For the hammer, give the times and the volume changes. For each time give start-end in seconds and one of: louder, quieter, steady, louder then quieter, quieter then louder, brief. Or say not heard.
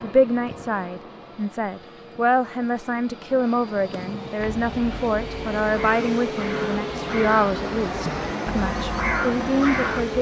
not heard.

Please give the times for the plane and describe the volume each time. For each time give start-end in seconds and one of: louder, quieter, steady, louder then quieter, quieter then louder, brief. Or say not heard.
0.0-10.1 louder.